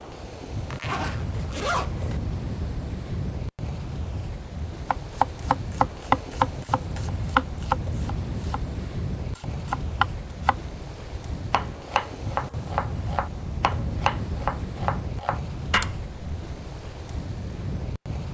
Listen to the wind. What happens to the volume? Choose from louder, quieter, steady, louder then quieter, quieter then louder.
steady.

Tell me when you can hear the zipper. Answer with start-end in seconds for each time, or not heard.
0.7-2.2.